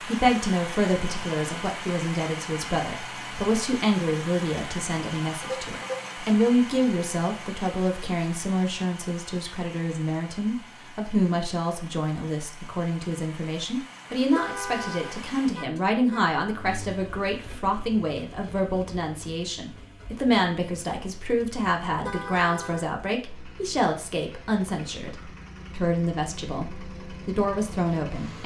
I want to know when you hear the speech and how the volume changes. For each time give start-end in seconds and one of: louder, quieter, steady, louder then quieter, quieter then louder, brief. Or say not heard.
0.1-28.4 steady.